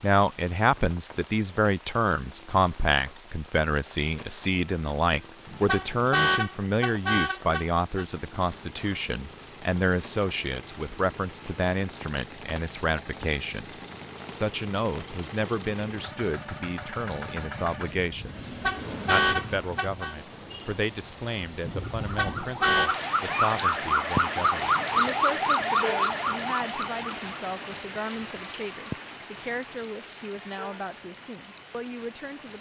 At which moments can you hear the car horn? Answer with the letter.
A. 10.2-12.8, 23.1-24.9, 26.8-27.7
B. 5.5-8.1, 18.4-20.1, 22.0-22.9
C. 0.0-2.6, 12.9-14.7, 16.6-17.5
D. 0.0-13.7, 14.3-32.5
B.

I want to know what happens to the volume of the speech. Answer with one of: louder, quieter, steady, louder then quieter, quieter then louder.
quieter.